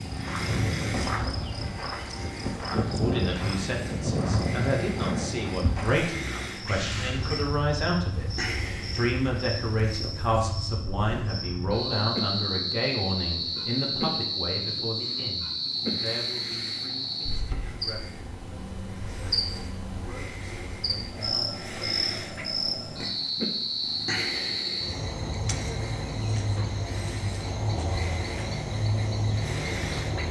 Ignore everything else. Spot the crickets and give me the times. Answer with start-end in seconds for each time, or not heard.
0.0-30.2.